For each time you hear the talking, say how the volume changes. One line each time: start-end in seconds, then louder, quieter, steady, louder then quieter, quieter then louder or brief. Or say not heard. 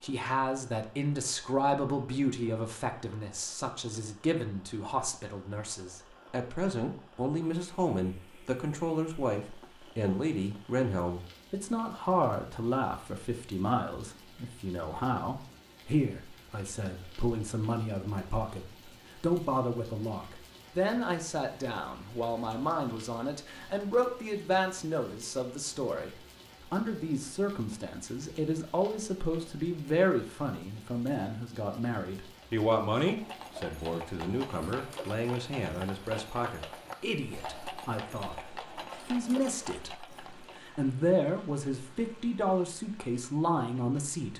0.0-44.3 steady.